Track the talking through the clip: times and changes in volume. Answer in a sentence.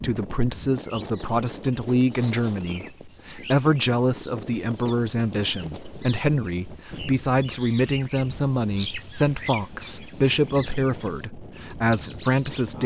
The talking can be heard from 0.0 to 12.8 s, at a steady volume.